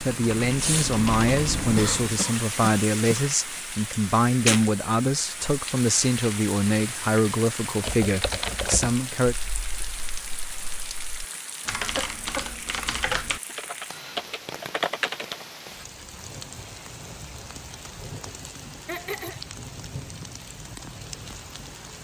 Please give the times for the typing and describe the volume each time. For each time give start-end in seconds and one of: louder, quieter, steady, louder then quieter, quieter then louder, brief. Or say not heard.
0.0-2.2 brief
7.8-15.4 quieter then louder.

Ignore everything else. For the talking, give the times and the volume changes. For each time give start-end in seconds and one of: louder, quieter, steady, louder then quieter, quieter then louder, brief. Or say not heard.
0.0-9.3 steady.